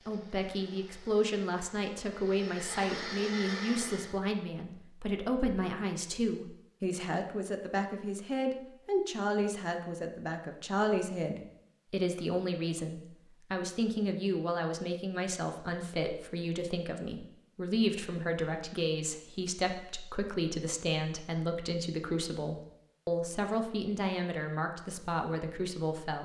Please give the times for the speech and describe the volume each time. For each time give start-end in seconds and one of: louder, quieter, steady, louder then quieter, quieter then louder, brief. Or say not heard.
0.1-26.2 steady.